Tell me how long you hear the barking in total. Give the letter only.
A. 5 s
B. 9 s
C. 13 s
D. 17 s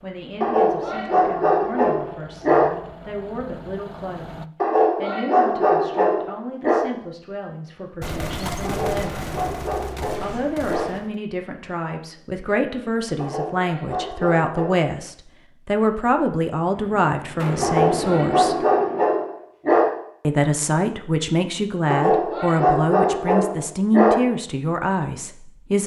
C.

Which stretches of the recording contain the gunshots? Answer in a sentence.
The gunshots can be heard from 8.0 to 11.1 s and from 16.7 to 19.2 s.